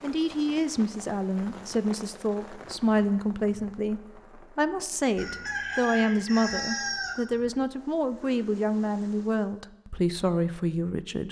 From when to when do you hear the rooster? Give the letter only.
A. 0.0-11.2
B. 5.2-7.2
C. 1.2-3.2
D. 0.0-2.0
B.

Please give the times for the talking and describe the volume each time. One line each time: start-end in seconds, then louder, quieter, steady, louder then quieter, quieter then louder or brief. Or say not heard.
0.0-11.2 steady.